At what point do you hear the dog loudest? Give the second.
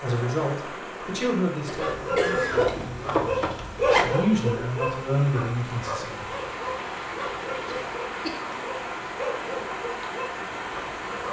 4 s.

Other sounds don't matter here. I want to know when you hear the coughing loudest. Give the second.
2 s.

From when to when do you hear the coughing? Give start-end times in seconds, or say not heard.
1.6-2.9, 7.7-8.6.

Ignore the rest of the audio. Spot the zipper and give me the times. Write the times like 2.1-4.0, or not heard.
2.5-4.2.